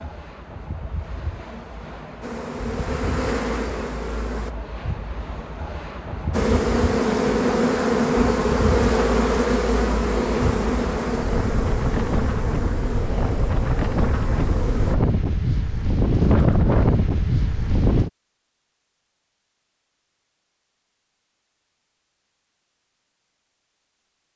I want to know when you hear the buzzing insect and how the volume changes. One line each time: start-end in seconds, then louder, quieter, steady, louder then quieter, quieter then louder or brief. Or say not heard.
2.2-4.5 brief
6.3-14.9 quieter.